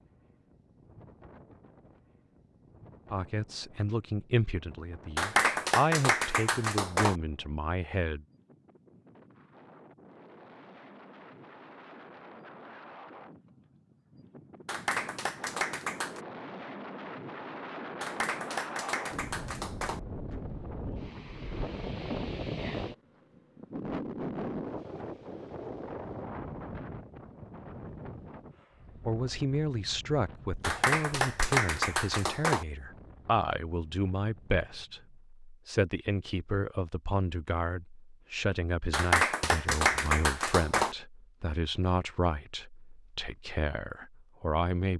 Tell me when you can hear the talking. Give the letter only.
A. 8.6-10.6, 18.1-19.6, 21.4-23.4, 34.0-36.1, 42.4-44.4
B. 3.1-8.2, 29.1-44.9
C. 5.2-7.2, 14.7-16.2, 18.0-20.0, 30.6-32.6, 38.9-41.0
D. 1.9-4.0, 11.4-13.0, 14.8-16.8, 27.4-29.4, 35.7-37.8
B.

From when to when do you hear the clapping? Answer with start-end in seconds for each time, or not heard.
5.2-7.2, 14.7-16.2, 18.0-20.0, 30.6-32.6, 38.9-41.0.